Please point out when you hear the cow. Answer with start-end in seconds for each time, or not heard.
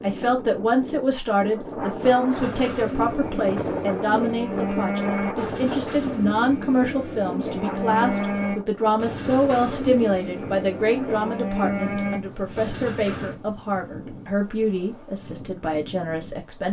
2.3-13.4.